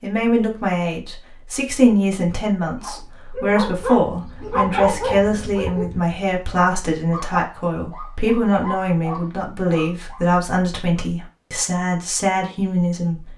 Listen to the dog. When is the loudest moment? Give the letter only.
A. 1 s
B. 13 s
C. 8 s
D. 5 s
D.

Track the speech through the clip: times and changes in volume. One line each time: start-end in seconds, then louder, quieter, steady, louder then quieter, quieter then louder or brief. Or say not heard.
0.0-13.3 steady.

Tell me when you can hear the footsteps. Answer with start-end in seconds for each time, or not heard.
not heard.